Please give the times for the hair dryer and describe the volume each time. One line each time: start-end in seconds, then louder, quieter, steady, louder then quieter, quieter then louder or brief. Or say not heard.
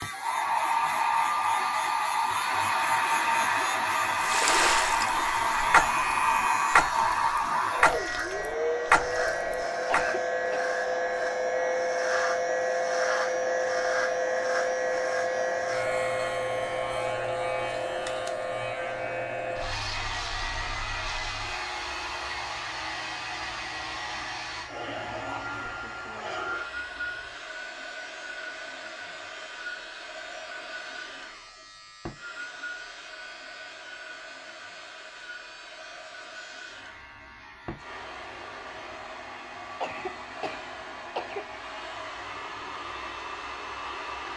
0.0-44.3 quieter.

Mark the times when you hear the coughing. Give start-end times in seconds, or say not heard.
9.8-10.7, 39.8-41.5.